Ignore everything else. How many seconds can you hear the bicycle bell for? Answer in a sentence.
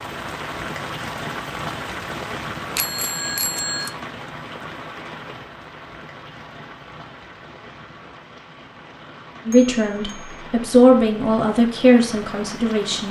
The bicycle bell can be heard for 2 seconds in total.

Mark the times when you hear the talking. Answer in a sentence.
The talking can be heard from 9.4 to 13.0 s.